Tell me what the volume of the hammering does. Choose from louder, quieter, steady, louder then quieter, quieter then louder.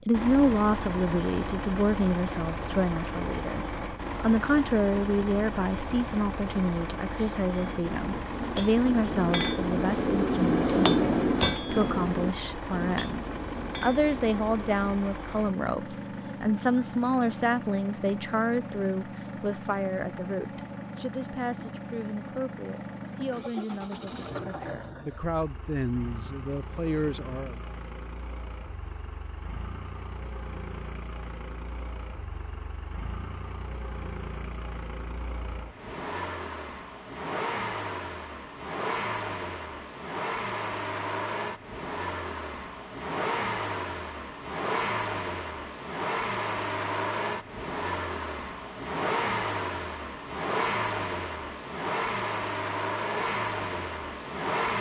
louder then quieter.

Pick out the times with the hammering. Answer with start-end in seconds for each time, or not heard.
7.5-15.0.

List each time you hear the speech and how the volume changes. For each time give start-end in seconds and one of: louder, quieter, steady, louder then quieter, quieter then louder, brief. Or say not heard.
0.1-27.6 quieter.